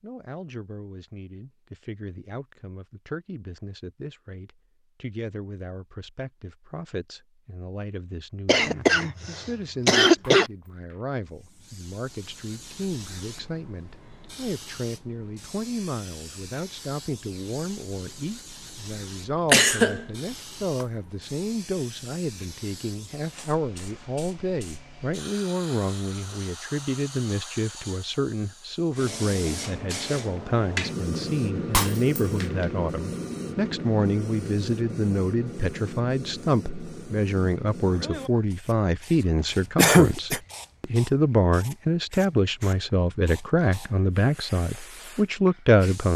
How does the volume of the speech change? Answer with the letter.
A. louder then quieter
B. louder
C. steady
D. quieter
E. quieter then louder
B.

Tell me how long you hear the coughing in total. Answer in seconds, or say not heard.
3 s.